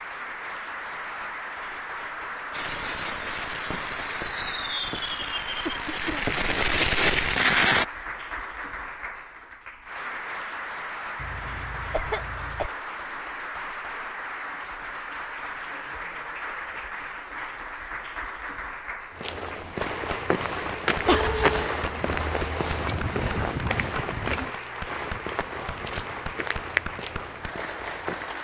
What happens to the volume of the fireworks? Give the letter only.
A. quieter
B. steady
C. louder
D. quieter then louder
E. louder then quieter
C.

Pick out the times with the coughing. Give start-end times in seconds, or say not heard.
5.7-6.3, 11.2-12.7, 21.1-21.7.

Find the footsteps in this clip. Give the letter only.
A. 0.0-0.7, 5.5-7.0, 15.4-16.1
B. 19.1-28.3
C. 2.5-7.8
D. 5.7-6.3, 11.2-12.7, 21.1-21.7
B.